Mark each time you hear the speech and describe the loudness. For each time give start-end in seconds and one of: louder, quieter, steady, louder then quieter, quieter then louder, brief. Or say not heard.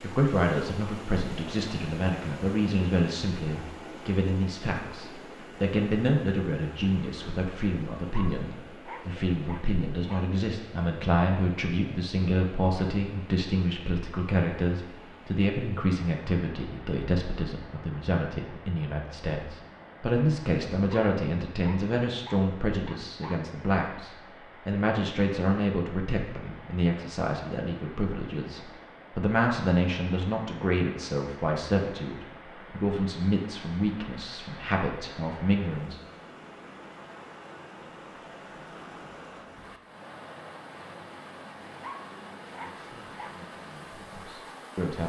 0.0-36.0 steady
42.7-45.0 brief.